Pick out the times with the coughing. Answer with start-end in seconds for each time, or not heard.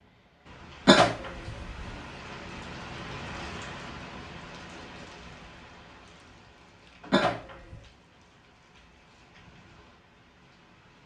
0.8-1.9, 7.1-7.8.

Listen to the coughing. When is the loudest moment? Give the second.
1 s.